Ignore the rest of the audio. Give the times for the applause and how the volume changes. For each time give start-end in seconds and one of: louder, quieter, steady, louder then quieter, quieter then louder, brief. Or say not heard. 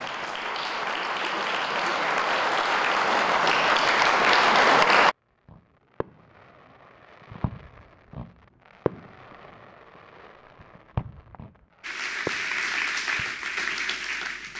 0.0-5.2 louder
11.8-14.5 brief.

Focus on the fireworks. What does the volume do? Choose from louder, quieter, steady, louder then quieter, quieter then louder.
louder.